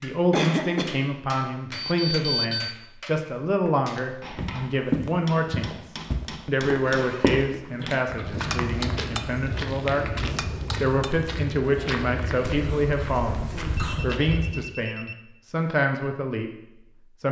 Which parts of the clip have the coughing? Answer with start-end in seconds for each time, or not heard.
0.3-1.0, 7.6-8.2, 12.6-14.1.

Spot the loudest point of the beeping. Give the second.
2 s.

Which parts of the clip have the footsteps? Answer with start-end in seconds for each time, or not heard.
4.3-14.7.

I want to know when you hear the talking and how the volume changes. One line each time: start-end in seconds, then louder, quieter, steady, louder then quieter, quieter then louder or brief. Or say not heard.
0.0-16.5 steady.